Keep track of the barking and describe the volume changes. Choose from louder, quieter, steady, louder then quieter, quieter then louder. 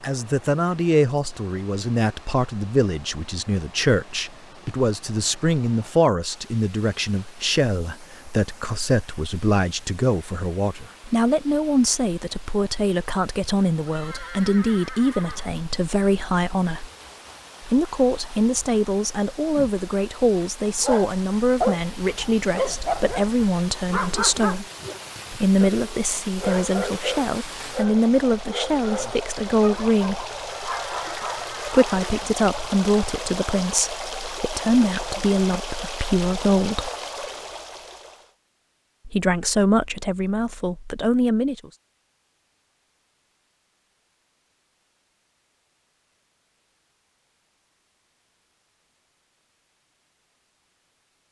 quieter.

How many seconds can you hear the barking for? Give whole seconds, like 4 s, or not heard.
12 s.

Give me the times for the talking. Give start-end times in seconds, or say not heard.
0.0-16.9, 17.6-24.6, 25.3-30.2, 31.6-36.9, 39.0-41.7.